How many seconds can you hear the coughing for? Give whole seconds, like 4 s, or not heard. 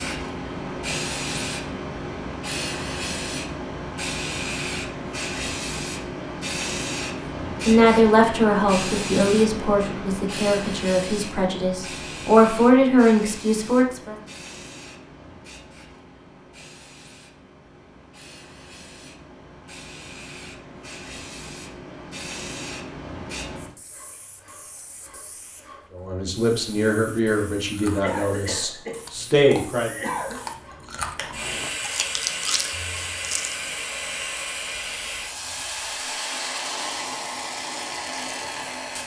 2 s.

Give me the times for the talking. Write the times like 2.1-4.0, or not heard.
7.7-14.2, 25.9-29.9.